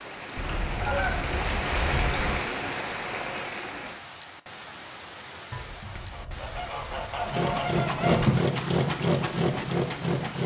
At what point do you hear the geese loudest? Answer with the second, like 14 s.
8 s.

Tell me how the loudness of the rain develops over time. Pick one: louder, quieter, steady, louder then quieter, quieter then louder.
quieter.